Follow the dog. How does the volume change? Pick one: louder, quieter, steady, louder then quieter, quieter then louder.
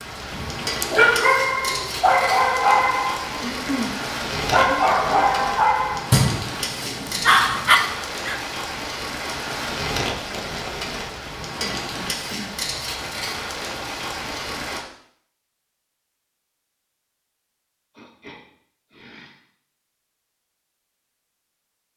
steady.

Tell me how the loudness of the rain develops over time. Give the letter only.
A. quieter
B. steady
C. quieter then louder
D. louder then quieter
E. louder
B.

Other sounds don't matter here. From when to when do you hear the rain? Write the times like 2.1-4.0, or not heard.
0.0-14.8.